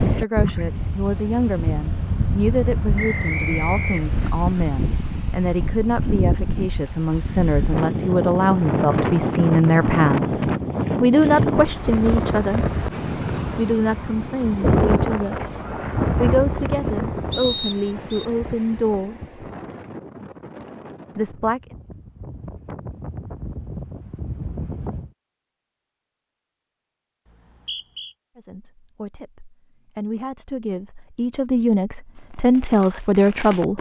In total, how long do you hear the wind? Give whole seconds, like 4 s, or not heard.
25 s.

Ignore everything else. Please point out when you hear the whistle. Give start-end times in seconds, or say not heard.
3.0-4.3, 17.3-18.2, 27.2-28.1.